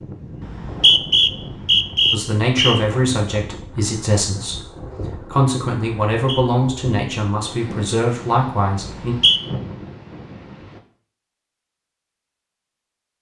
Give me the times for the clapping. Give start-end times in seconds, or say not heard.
not heard.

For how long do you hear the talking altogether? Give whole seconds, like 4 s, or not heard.
7 s.